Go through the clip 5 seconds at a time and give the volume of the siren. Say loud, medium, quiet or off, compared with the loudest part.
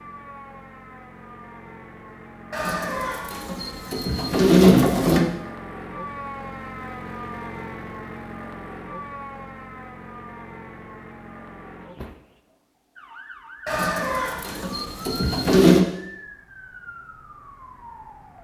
medium, loud, medium, medium.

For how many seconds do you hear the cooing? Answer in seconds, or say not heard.
5 s.